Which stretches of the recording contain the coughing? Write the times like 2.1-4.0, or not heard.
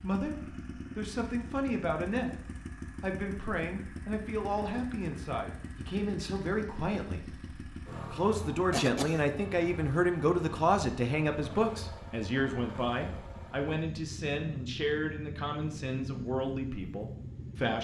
8.7-9.2.